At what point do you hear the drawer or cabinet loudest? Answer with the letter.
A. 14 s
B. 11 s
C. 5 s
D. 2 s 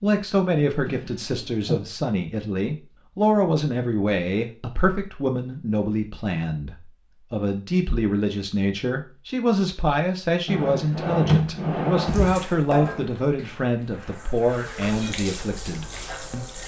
B.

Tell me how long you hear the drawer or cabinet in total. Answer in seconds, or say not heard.
3 s.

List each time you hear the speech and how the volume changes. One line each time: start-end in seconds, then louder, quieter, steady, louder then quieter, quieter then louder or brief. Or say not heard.
0.0-16.6 steady.